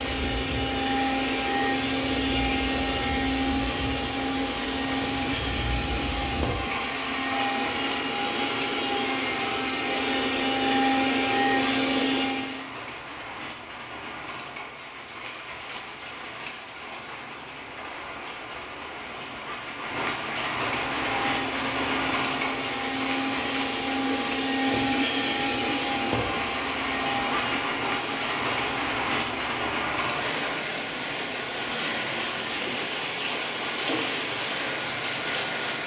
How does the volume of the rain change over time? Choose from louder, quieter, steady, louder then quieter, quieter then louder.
louder.